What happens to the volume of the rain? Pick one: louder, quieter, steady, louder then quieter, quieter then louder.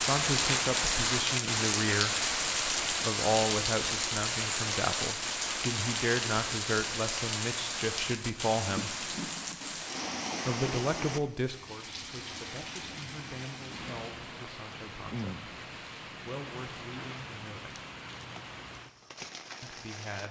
quieter.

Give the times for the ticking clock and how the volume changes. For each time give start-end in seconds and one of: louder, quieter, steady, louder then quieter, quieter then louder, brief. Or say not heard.
not heard.